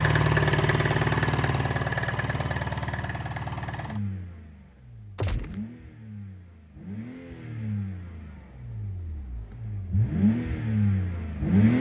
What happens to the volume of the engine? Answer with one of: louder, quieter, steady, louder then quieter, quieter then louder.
quieter then louder.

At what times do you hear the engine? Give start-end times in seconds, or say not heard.
0.0-11.7.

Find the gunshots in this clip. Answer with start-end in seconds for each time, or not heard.
5.2-5.7.